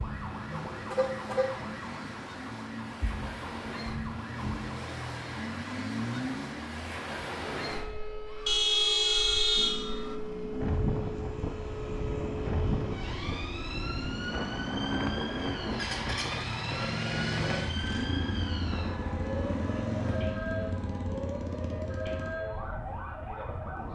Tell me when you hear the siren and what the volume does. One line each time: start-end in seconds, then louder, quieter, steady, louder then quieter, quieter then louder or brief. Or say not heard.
0.0-23.9 steady.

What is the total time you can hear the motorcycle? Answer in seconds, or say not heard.
13 s.